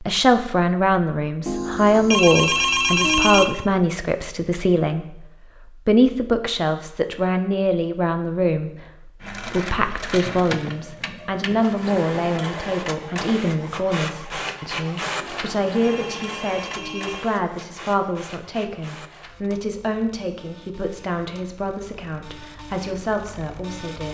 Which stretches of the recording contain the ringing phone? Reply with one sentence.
You can hear the ringing phone from 1.4 to 3.5 s and from 15.2 to 17.2 s.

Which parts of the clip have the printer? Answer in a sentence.
You can hear the printer from 9.2 to 24.0 s.